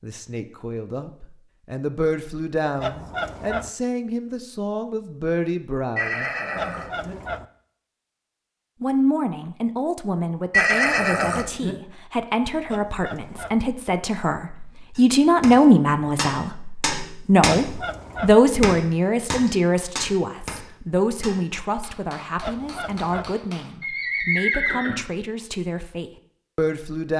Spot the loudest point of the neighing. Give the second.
11 s.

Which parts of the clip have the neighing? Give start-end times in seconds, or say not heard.
6.0-7.2, 10.5-11.8, 23.8-24.9.